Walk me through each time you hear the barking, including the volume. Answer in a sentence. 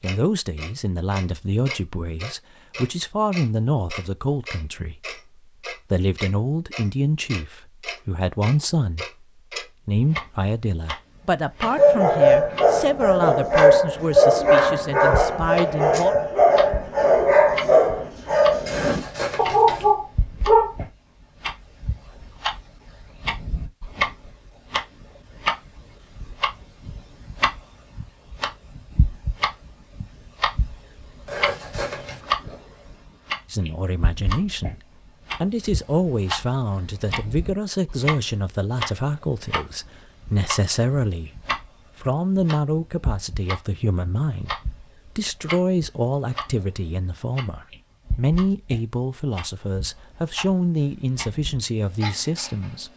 The barking can be heard from 11.6 to 20.8 s, at a steady volume.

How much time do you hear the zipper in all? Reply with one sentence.
You can hear the zipper for 2 seconds altogether.